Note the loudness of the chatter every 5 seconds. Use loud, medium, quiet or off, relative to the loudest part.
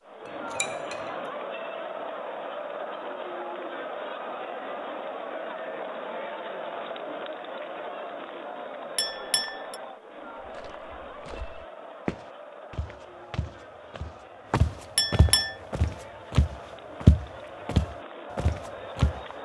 loud, loud, medium, medium.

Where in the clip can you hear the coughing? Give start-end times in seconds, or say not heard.
not heard.